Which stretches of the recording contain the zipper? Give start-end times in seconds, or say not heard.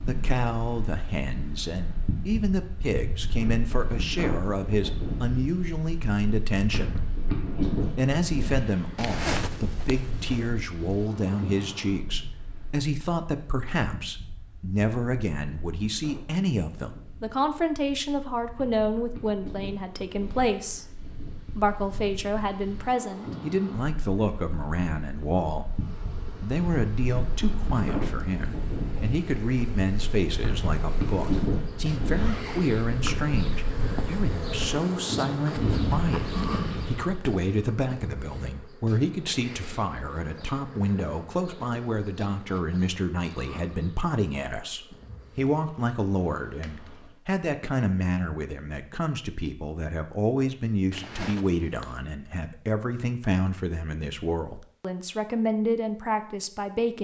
8.9-10.6, 32.0-33.1, 50.9-52.0.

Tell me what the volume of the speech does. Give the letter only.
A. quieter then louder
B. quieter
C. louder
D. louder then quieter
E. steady
E.